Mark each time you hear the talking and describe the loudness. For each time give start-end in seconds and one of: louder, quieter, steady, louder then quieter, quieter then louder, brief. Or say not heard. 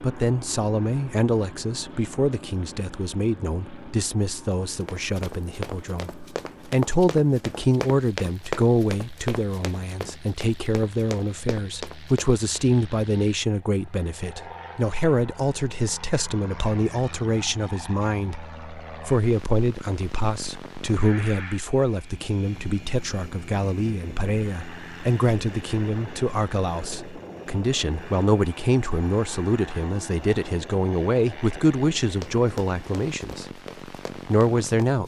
0.0-35.0 steady.